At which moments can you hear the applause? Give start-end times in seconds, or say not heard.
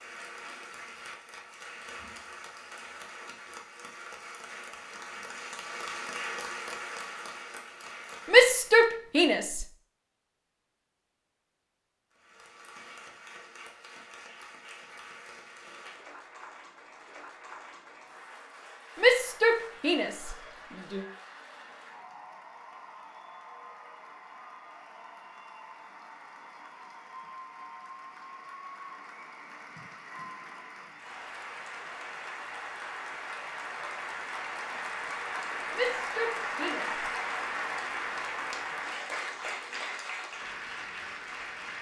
0.0-8.8, 12.1-41.7.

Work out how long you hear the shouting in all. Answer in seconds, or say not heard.
5 s.